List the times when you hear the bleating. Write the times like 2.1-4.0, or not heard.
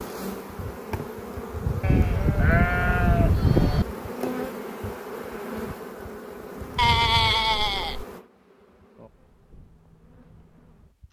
1.8-3.9, 6.8-8.1.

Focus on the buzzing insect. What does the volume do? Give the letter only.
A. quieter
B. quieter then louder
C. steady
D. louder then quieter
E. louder
A.